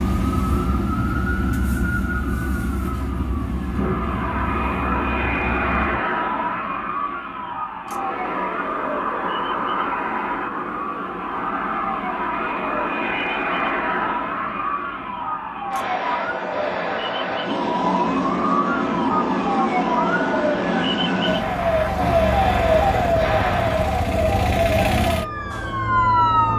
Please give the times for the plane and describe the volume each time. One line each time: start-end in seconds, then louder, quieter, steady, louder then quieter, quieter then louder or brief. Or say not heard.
3.6-24.1 steady.